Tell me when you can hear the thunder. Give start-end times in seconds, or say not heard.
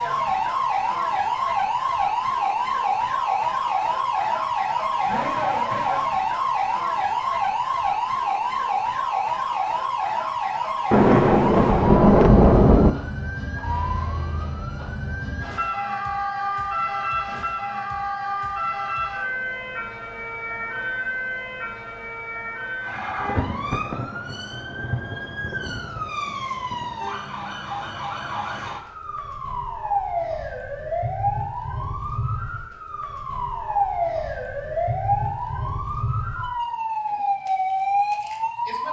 10.9-12.9, 23.2-26.9.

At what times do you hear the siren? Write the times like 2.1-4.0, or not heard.
0.0-38.8.